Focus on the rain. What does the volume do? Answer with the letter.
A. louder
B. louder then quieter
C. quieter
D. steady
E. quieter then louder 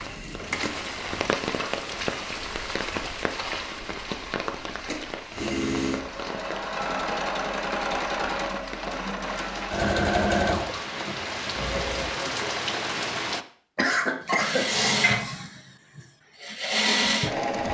E.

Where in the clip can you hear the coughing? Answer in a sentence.
You can hear the coughing from 13.8 to 15.3 s.